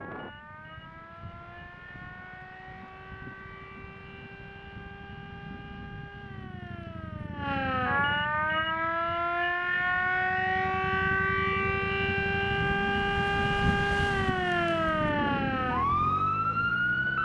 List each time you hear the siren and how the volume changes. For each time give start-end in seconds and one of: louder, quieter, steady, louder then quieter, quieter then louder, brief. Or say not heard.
0.0-17.1 louder.